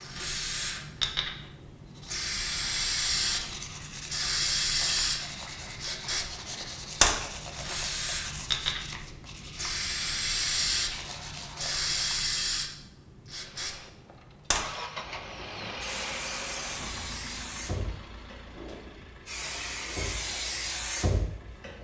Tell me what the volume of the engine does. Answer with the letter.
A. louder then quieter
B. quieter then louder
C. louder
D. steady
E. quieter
E.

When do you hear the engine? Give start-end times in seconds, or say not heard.
13.3-21.7.